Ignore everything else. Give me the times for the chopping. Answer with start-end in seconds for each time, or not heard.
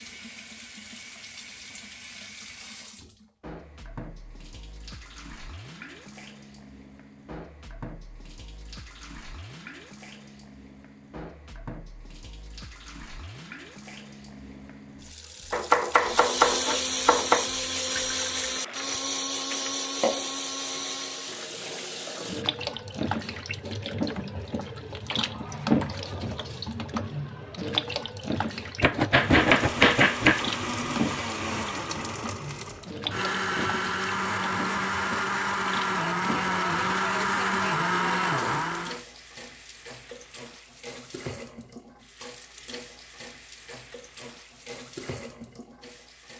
15.5-17.5, 28.8-30.4.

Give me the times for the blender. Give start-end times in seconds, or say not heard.
15.9-21.5, 29.1-39.0.